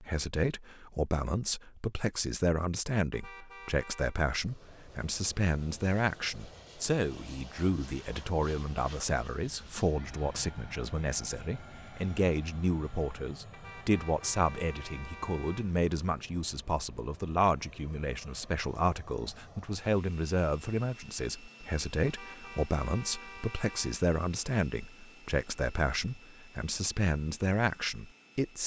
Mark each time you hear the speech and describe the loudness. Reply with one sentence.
The speech can be heard from 0.0 to 28.6 s, at a steady volume.